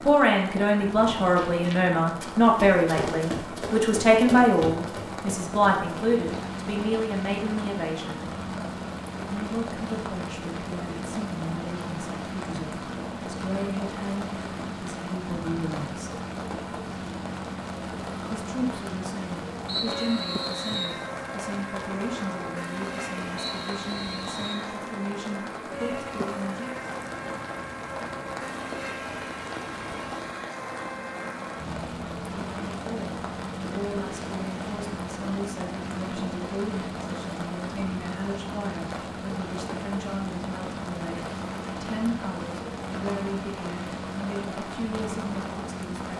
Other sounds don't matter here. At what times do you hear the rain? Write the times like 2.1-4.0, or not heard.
0.0-46.1.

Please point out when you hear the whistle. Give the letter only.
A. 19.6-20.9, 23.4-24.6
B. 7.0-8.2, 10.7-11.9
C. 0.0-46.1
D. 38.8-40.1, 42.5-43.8
A.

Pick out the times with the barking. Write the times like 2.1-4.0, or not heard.
not heard.